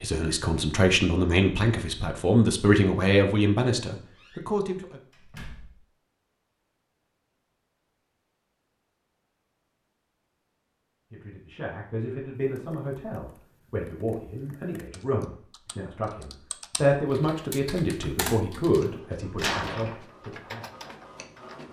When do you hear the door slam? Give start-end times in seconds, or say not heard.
4.2-5.8, 19.4-19.9.